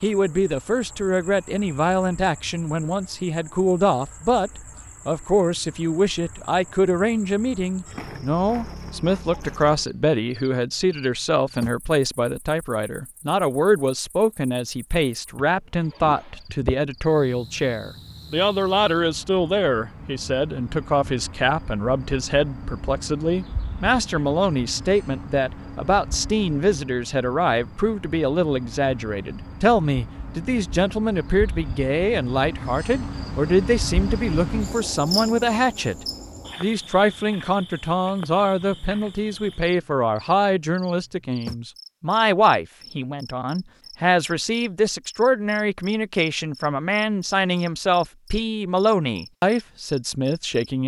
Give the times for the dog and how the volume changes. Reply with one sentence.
You can't hear the dog here.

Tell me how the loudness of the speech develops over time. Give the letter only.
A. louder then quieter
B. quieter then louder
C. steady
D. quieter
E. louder
C.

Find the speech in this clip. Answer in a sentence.
You can hear the speech from 0.0 to 50.8 s.